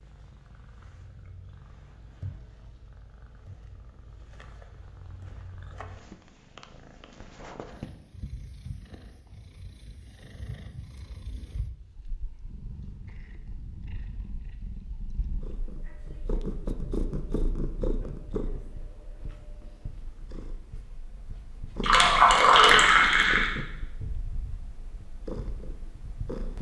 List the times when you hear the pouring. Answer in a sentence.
You can hear the pouring from 21.8 to 23.5 s.